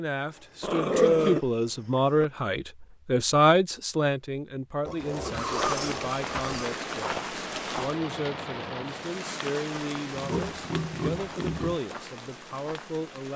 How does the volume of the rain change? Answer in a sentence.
The volume of the rain goes down.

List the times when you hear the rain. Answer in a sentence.
The rain can be heard from 5.0 to 13.3 s.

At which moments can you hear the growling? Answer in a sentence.
You can hear the growling from 0.6 to 1.4 s.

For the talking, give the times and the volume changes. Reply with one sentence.
You can hear the talking from 0.0 to 13.3 s, getting quieter.